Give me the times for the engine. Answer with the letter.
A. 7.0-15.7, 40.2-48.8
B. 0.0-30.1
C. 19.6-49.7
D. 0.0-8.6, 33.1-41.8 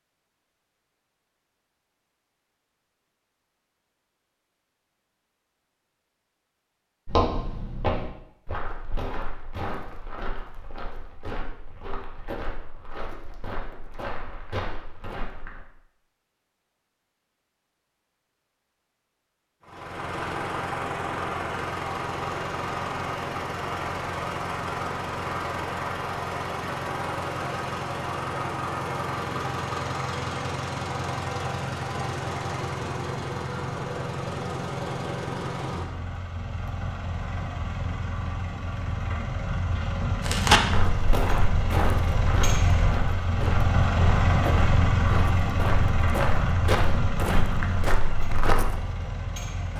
C.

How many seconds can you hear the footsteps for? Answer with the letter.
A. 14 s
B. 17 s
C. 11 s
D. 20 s
B.